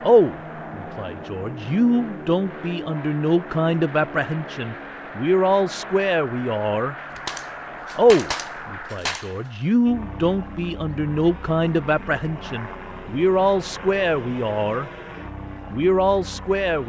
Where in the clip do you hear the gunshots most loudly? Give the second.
8 s.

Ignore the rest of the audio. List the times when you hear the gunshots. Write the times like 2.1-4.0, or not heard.
7.0-9.4.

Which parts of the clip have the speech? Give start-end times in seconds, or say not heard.
0.0-7.0, 8.0-14.9, 15.7-16.8.